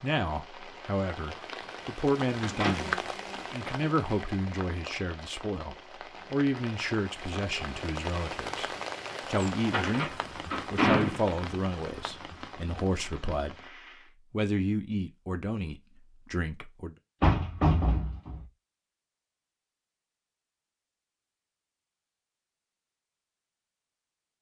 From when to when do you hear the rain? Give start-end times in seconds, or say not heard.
0.0-14.2.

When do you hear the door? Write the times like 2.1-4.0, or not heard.
2.4-2.9, 9.7-11.2, 17.2-18.4.